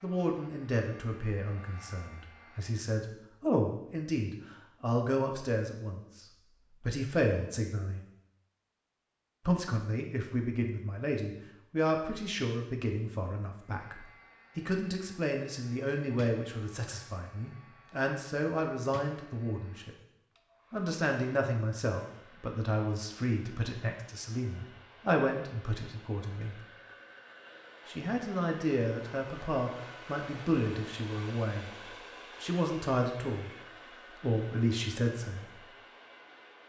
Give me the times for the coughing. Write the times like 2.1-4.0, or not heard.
not heard.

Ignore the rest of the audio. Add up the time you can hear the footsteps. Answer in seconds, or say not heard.
not heard.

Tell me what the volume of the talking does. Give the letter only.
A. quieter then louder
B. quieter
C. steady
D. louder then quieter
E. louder
C.